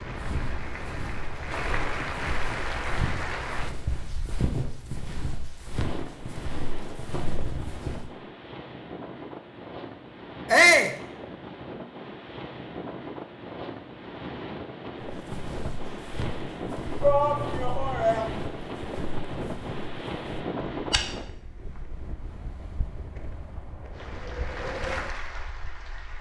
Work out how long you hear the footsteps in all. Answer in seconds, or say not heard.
15 s.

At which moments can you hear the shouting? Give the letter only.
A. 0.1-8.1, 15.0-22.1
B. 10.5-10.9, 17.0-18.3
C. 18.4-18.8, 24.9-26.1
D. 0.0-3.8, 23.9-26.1
B.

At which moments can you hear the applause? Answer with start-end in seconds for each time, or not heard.
0.0-3.8, 23.9-26.1.